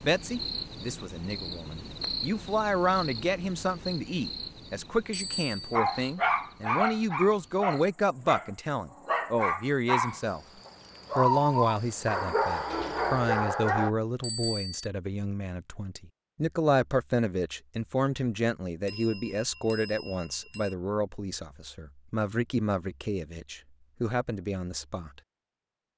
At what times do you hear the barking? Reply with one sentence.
You can hear the barking from 5.7 to 13.9 s.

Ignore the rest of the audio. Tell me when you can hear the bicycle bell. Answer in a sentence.
The bicycle bell can be heard from 5.1 to 5.8 s, from 14.2 to 14.8 s and from 18.9 to 20.8 s.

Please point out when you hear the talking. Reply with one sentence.
You can hear the talking from 0.0 to 10.4 s and from 11.2 to 25.2 s.